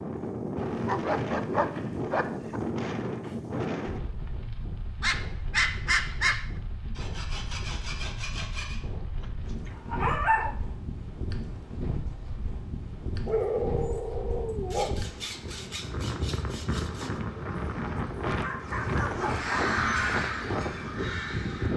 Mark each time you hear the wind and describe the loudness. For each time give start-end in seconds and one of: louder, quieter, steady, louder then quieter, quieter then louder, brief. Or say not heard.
0.0-21.7 quieter then louder.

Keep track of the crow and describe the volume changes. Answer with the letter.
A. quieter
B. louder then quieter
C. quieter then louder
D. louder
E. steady
B.